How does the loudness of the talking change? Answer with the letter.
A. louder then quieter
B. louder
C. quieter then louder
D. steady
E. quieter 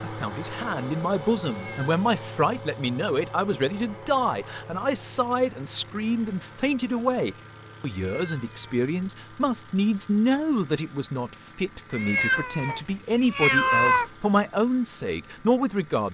D.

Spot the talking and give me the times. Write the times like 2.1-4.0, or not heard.
0.0-16.0.